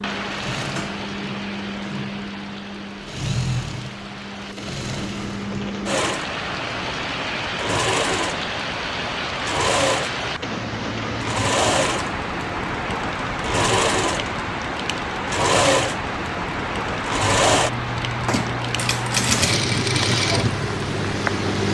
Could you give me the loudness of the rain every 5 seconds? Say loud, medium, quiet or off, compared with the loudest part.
medium, loud, loud, loud, loud.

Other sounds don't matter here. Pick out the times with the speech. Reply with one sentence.
The speech can't be heard in this clip.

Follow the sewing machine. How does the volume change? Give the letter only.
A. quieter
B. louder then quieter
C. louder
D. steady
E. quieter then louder
C.